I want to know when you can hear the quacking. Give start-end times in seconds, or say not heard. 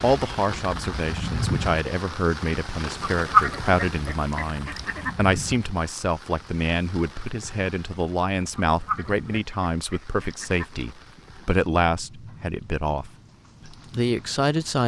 3.0-5.2, 8.6-10.8.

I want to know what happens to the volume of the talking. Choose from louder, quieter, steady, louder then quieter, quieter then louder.
steady.